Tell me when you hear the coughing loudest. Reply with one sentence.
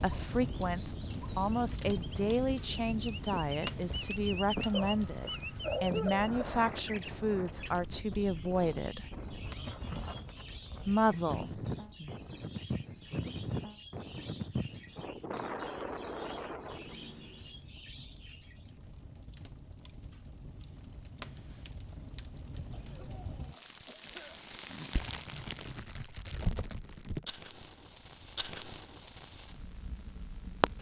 The loudest moment of the coughing is at 6 seconds.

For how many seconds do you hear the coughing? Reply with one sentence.
You can hear the coughing for 4 seconds altogether.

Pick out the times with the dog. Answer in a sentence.
You can't hear the dog here.